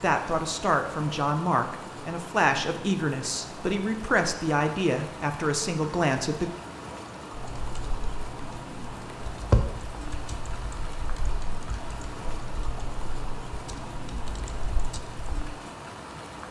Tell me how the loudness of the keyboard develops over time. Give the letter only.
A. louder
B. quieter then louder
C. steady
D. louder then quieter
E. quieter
D.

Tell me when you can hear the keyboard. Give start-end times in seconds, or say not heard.
7.3-15.6.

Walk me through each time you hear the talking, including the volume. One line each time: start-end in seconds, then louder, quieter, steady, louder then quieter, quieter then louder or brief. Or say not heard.
0.0-6.5 steady.